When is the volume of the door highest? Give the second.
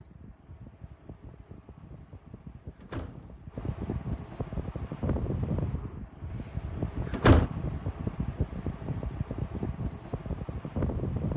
7 s.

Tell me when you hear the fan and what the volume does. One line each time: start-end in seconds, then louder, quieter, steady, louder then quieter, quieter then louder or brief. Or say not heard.
0.0-11.3 louder.